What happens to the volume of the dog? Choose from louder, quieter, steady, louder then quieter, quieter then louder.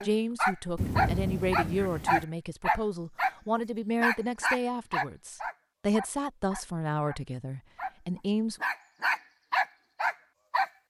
quieter then louder.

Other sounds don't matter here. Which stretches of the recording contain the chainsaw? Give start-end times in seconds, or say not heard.
not heard.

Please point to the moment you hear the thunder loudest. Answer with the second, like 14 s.
1 s.